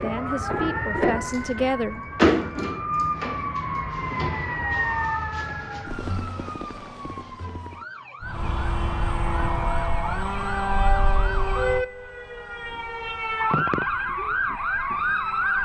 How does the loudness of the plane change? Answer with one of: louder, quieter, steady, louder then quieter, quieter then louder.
quieter.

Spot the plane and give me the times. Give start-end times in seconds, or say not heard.
8.2-15.6.